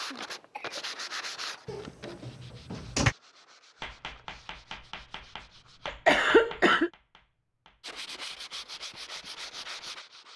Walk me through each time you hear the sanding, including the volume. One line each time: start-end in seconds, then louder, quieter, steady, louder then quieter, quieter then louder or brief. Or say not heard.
0.0-6.0 quieter
7.8-10.3 brief.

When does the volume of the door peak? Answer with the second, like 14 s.
3 s.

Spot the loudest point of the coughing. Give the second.
6 s.